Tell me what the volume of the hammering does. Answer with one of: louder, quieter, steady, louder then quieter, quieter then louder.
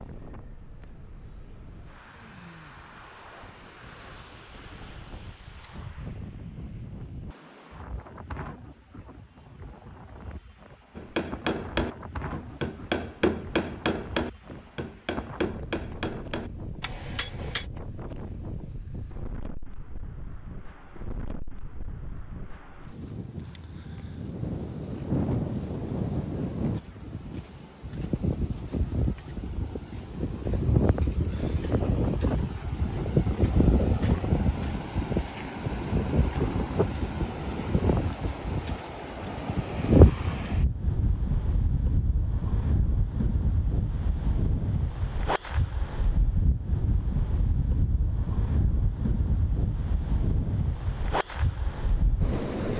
quieter.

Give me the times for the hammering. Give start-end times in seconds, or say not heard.
10.9-17.7.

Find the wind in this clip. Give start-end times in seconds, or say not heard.
0.0-52.7.